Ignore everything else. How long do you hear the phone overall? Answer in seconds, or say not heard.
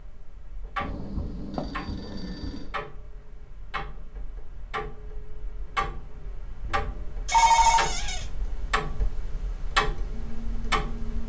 3 s.